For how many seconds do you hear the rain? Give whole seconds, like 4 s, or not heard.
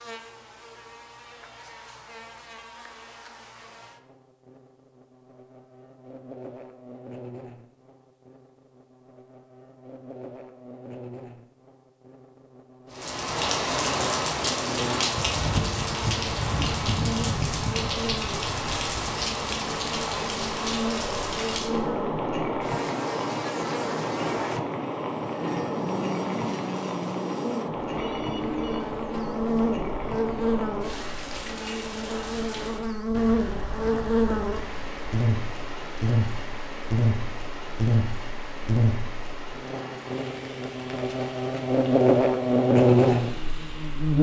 31 s.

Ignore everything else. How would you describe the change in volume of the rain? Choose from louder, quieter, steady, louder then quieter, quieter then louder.
quieter.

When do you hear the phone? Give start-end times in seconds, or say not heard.
27.9-28.9.